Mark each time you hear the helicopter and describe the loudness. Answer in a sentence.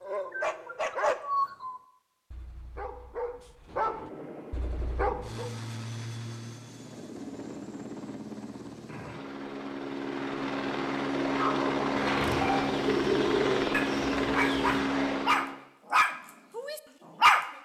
The helicopter can be heard from 3.6 to 15.6 s, getting louder.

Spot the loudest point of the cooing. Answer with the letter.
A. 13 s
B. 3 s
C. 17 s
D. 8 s
A.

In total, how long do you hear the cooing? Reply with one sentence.
The cooing can be heard for 3 seconds in total.